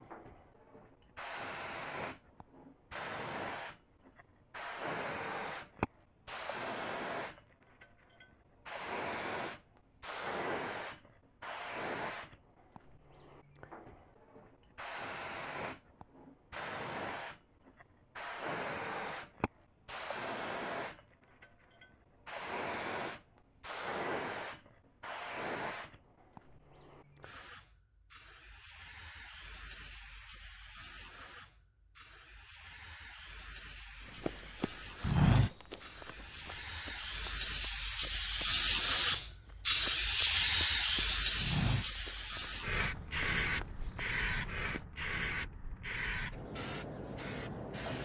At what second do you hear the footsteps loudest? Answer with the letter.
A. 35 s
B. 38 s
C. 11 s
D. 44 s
A.